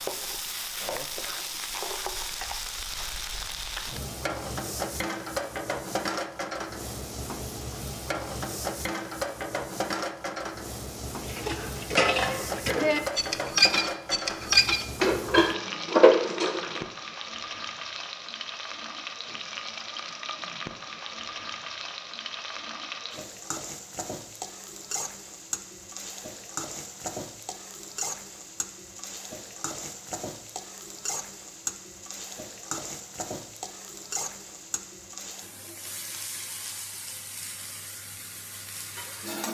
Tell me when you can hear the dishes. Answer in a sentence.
The dishes can be heard from 11.2 to 16.9 s.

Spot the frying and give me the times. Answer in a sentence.
The frying can be heard from 0.0 to 39.4 s.